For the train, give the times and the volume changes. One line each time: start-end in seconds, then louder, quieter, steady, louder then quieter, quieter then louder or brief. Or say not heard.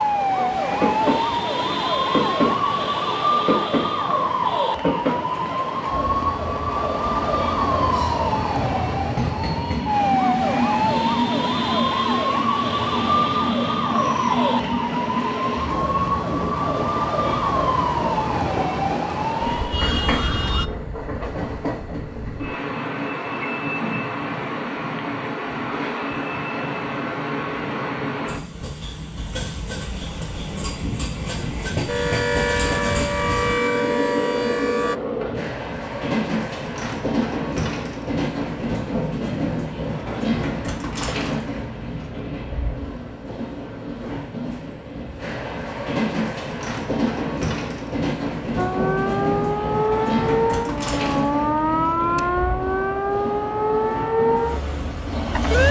0.0-55.6 steady.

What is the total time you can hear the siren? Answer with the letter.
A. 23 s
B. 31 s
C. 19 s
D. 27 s
B.